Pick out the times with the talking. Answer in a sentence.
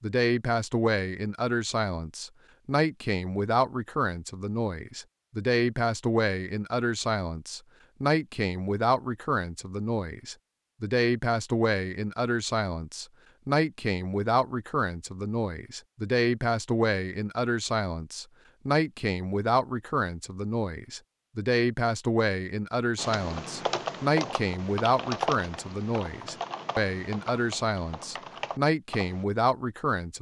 You can hear the talking from 0.0 to 30.1 s.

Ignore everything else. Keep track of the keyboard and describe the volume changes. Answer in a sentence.
The loudness of the keyboard goes down.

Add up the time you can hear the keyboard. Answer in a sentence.
The keyboard can be heard for 6 seconds in total.